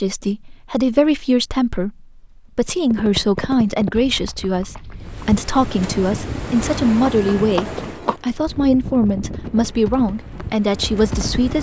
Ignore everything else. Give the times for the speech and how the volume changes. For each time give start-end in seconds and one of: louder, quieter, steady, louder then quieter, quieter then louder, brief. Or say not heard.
0.0-11.5 steady.